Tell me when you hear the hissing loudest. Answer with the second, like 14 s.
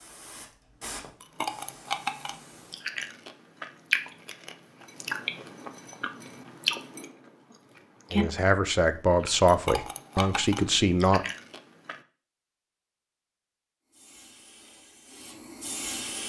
16 s.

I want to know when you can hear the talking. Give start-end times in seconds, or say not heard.
8.1-11.2.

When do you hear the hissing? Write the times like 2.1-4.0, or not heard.
0.0-2.9, 13.8-16.2.